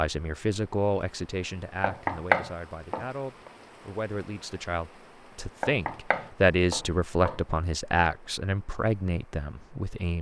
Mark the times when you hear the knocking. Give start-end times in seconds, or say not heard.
1.8-3.5, 5.6-7.4.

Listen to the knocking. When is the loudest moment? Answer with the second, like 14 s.
2 s.